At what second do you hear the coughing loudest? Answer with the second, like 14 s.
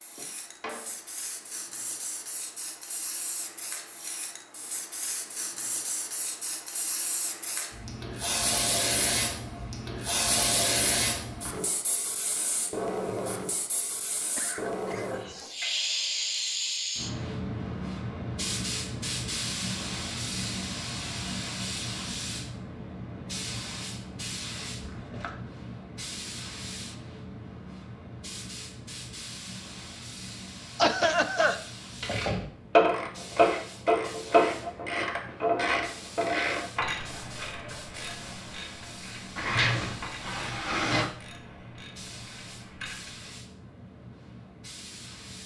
31 s.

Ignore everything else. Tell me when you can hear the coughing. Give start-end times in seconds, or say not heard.
14.3-15.8, 30.8-31.6.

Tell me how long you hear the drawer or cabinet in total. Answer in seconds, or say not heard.
3 s.